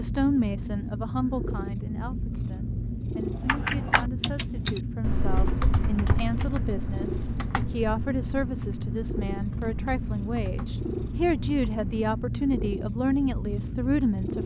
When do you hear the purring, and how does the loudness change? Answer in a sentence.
You can hear the purring from 0.0 to 14.4 s, at a steady volume.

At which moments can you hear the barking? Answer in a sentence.
You can't hear the barking here.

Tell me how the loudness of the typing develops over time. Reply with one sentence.
The volume of the typing goes down.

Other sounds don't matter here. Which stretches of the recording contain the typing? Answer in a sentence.
The typing can be heard from 3.4 to 12.3 s.